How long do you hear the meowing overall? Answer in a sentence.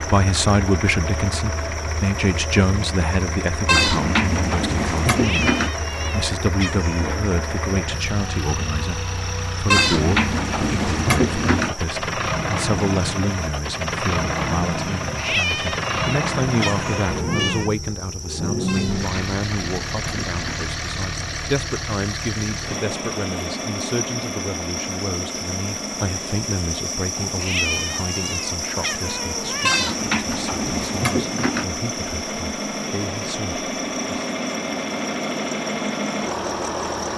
You can hear the meowing for 7 seconds altogether.